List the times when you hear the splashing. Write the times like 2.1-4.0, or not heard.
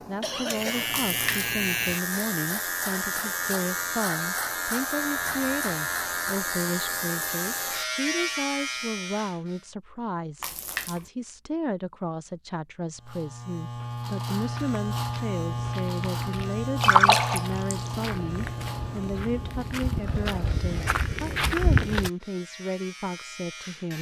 0.9-1.5, 10.4-11.0, 16.8-17.9.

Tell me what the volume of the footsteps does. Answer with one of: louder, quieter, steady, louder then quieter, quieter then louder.
louder.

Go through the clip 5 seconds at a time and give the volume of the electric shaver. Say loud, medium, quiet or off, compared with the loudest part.
loud, loud, loud, loud, quiet.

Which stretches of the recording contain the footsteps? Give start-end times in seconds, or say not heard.
14.3-22.1.